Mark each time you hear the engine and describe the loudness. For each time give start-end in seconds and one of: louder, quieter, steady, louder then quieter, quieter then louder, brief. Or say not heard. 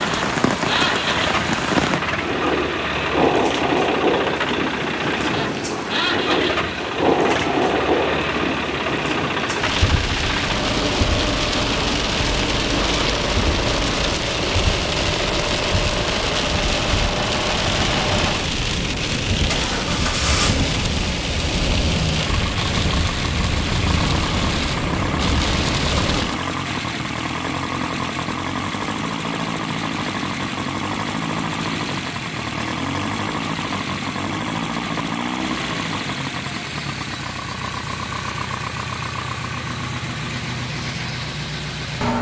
0.0-42.1 steady.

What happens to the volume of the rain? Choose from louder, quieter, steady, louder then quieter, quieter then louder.
steady.